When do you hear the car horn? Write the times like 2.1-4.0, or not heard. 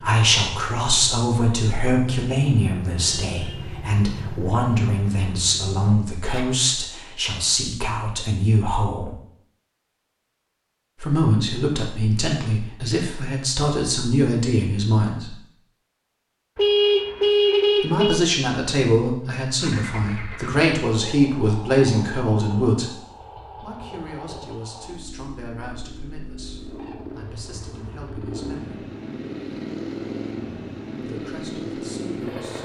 3.0-3.7, 16.6-18.2.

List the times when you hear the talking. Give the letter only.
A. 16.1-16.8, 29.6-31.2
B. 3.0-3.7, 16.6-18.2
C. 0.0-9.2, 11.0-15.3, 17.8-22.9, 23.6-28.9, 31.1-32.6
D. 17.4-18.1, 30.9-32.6
C.